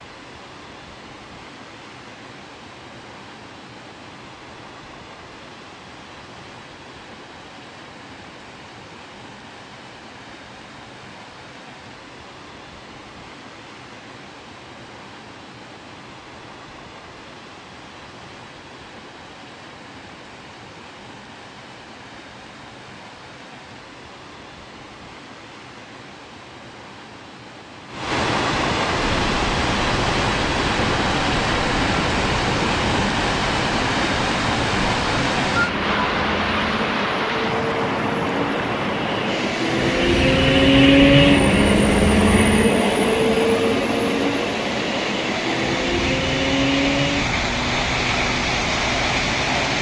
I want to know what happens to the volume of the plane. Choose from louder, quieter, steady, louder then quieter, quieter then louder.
louder then quieter.